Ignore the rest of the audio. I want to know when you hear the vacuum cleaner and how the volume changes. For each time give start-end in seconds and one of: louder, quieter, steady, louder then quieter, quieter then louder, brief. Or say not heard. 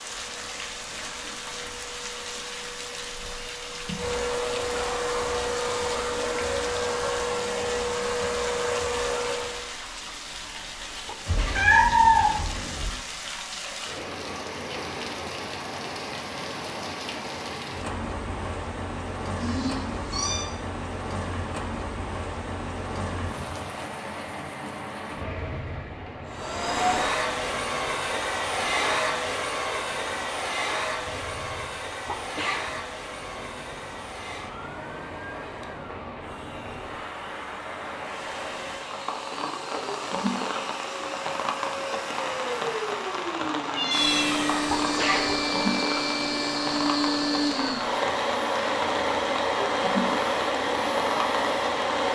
0.0-9.8 louder
26.2-52.1 quieter then louder.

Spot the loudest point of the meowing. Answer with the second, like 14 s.
12 s.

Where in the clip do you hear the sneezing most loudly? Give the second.
45 s.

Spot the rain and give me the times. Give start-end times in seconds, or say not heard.
0.0-52.1.